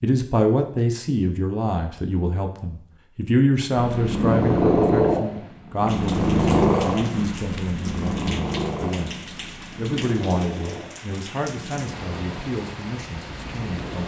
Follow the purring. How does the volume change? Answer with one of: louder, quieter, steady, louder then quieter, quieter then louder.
quieter.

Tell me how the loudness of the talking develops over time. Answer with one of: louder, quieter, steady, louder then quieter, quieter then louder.
quieter.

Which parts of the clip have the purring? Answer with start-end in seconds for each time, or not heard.
3.8-14.0.